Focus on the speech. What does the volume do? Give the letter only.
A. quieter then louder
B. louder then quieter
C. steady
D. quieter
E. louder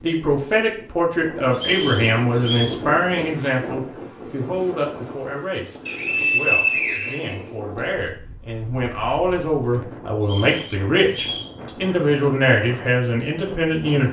A.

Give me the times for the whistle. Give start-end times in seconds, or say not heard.
1.5-2.7, 5.8-7.8, 10.2-11.5.